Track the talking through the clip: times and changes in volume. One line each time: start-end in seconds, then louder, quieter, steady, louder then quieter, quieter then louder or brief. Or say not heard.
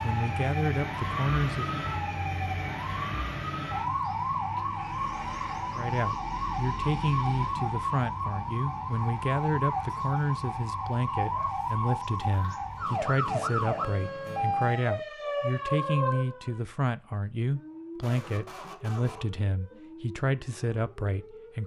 0.0-1.8 brief
5.8-21.6 steady.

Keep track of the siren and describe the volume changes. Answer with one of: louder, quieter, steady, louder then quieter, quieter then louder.
quieter.